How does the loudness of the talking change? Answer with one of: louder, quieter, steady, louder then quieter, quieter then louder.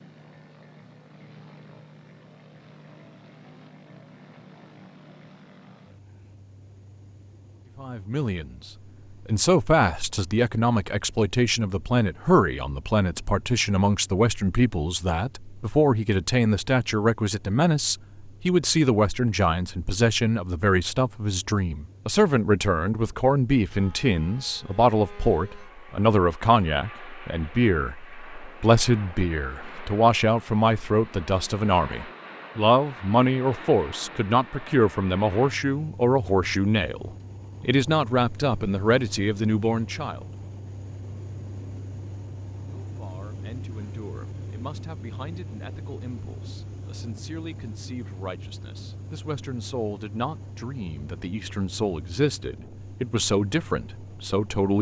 quieter.